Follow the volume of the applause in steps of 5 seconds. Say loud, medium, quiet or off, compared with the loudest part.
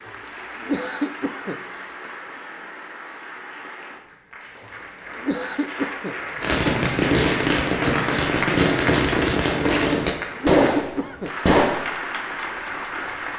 medium, loud, loud.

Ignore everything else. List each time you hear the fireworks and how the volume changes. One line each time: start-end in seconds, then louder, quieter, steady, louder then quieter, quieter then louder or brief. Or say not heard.
6.4-11.9 steady.